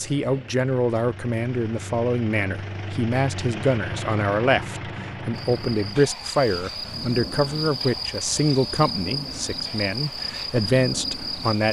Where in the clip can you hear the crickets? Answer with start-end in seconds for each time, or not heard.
5.3-11.6.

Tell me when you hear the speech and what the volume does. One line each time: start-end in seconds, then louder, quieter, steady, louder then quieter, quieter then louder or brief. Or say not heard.
0.0-11.6 steady.